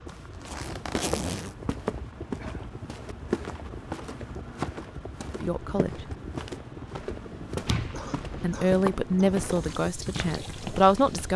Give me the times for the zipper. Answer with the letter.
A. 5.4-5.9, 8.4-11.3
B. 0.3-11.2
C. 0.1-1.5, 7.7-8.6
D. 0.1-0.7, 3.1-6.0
C.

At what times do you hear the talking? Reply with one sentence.
You can hear the talking from 5.4 to 5.9 s and from 8.4 to 11.3 s.